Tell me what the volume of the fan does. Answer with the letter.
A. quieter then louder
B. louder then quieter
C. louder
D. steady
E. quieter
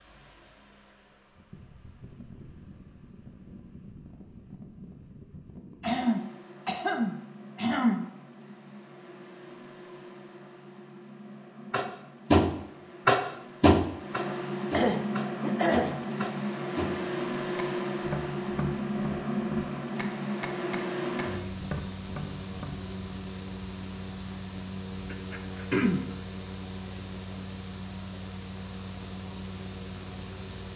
B.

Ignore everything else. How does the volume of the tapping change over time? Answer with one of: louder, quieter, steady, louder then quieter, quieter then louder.
quieter.